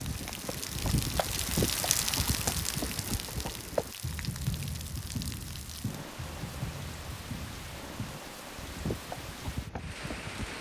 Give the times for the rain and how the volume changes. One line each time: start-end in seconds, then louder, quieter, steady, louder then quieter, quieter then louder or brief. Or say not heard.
0.0-10.5 quieter.